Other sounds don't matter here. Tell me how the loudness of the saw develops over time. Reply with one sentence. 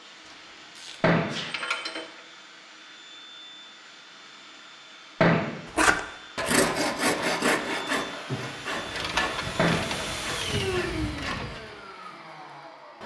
The loudness of the saw goes down.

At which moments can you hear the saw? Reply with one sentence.
You can hear the saw from 5.8 to 11.6 s.